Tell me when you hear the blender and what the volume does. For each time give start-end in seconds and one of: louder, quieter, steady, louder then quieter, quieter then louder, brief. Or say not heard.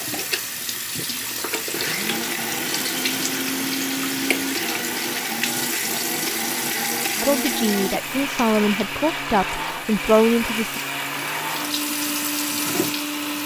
0.0-13.4 steady.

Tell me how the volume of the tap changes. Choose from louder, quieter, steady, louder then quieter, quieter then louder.
quieter then louder.